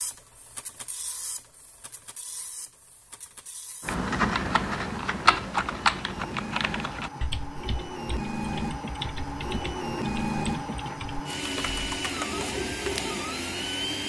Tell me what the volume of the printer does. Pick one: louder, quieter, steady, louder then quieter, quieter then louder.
louder.